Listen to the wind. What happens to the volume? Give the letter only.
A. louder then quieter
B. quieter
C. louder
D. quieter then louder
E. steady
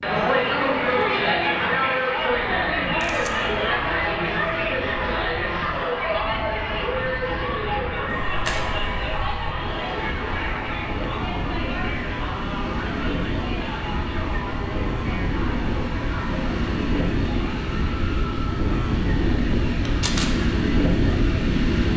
C.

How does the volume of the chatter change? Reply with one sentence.
The loudness of the chatter goes down.